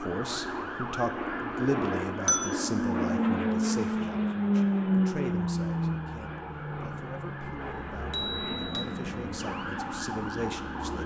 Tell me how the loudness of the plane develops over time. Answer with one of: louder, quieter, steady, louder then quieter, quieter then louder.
louder then quieter.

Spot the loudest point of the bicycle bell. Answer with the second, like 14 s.
2 s.